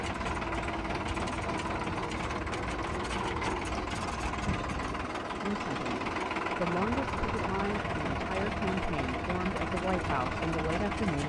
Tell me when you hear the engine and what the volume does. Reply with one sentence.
The engine can be heard from 0.0 to 11.2 s, at a steady volume.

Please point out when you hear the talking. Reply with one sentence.
The talking can be heard from 5.4 to 11.2 s.